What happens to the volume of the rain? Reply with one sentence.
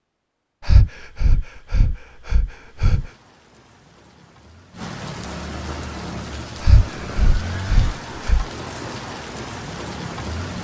The loudness of the rain goes up.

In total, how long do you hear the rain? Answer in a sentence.
You can hear the rain for 8 seconds altogether.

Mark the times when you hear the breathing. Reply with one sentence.
You can hear the breathing from 0.7 to 3.1 s and from 6.6 to 8.4 s.